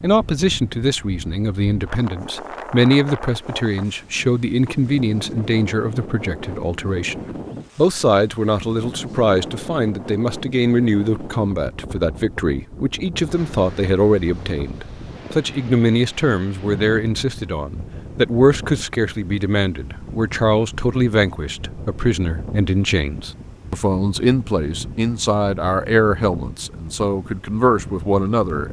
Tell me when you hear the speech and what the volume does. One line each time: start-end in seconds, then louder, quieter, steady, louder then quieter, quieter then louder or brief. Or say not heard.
0.0-28.6 steady.